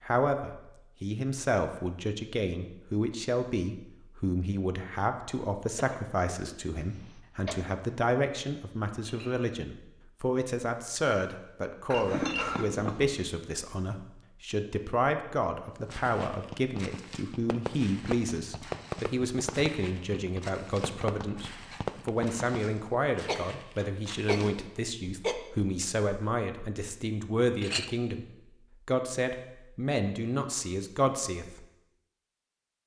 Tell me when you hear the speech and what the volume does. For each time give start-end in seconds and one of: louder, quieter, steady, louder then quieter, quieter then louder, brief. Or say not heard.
0.0-28.2 steady
28.9-31.6 brief.